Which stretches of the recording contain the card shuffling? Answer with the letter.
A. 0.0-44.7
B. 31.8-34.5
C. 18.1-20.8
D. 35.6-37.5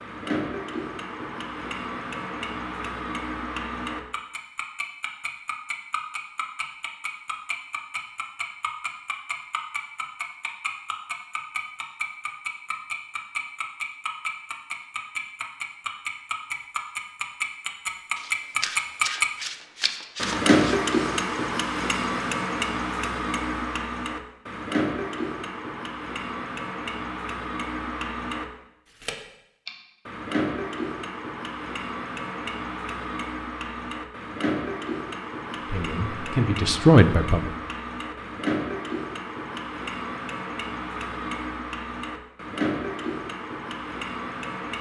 C.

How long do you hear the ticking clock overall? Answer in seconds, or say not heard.
45 s.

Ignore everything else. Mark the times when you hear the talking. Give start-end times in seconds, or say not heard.
35.6-37.5.